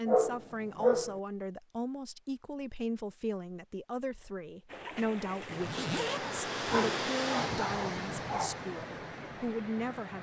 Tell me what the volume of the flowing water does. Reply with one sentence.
The loudness of the flowing water goes up, then down.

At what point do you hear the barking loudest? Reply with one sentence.
The volume of the barking peaks at 1 second.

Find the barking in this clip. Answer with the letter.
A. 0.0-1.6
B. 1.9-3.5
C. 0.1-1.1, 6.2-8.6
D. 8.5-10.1
C.